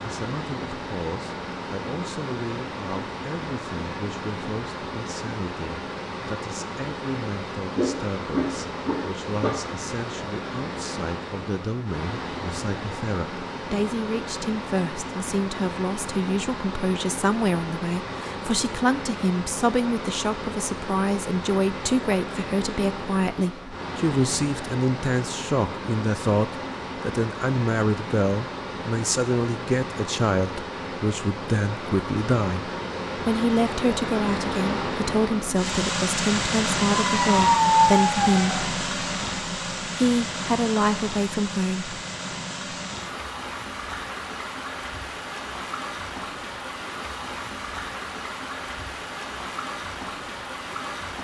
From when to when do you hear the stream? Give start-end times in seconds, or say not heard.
0.0-51.1.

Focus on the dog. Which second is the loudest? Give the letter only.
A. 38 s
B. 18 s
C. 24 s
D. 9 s
A.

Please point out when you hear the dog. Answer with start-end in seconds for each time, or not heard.
7.8-9.6, 37.0-38.6.